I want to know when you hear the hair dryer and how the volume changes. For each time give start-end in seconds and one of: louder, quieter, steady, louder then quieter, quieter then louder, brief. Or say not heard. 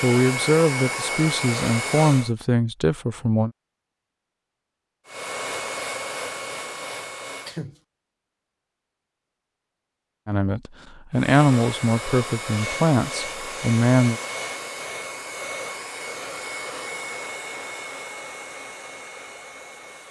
0.0-2.3 brief
5.0-7.6 brief
11.1-20.0 quieter.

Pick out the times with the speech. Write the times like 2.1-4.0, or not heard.
0.0-3.5, 10.2-14.2.